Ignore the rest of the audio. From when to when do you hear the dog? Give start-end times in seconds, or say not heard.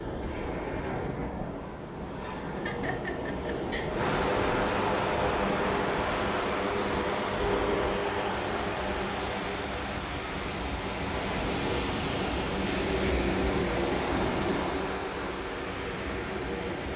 not heard.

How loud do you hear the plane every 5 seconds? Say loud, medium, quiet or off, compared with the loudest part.
loud, loud, loud, medium.